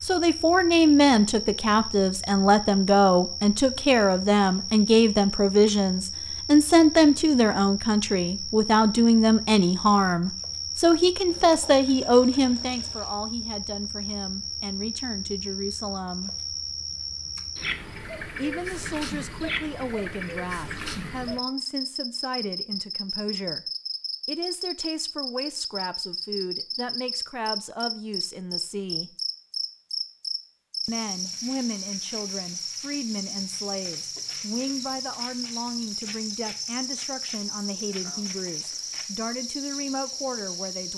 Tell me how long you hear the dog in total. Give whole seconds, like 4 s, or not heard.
not heard.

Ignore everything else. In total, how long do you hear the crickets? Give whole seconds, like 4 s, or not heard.
41 s.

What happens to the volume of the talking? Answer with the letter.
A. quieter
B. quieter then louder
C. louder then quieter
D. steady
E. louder
A.